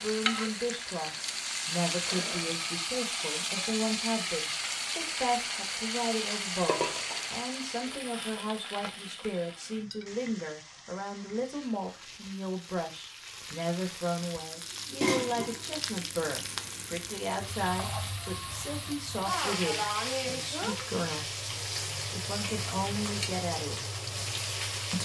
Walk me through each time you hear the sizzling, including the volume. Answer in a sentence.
The sizzling can be heard from 0.0 to 25.0 s, getting quieter then louder.